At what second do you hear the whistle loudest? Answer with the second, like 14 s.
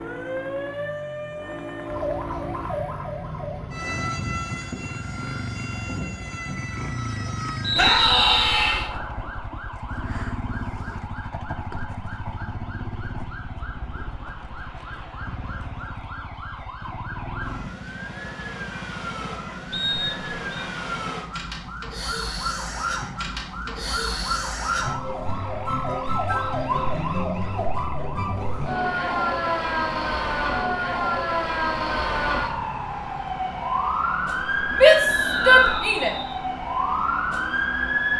8 s.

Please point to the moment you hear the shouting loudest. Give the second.
35 s.